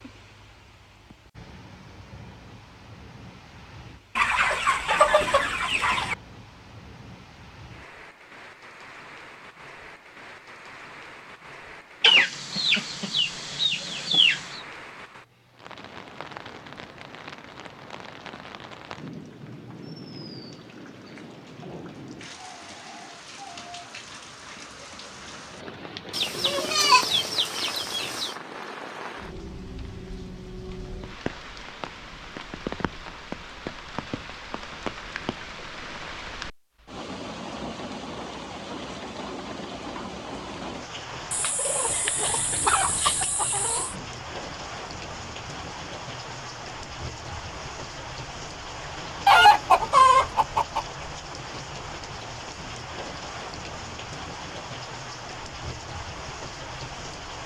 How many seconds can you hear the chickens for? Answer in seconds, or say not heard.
11 s.